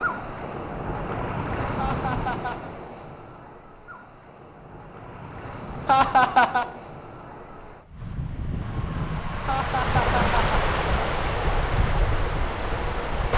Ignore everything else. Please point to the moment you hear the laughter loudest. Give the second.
6 s.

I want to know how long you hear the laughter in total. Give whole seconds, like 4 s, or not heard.
3 s.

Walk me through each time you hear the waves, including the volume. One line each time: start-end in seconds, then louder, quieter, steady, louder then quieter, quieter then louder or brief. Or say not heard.
0.0-13.3 quieter then louder.